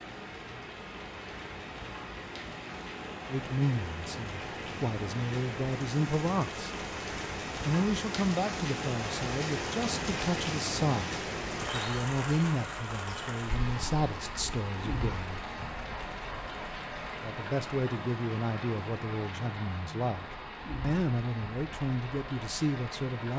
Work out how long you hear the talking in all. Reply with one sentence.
The talking can be heard for 17 seconds in total.